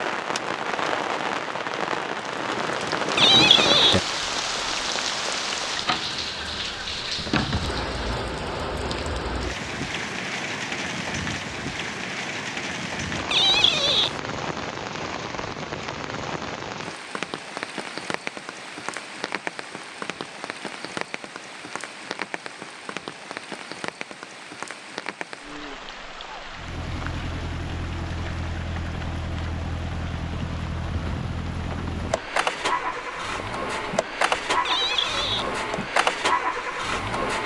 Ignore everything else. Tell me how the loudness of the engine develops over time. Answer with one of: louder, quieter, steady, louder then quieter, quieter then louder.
louder.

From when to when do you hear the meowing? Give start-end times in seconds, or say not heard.
3.1-4.0, 13.3-14.2, 34.6-35.5.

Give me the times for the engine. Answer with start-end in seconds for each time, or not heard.
26.5-37.4.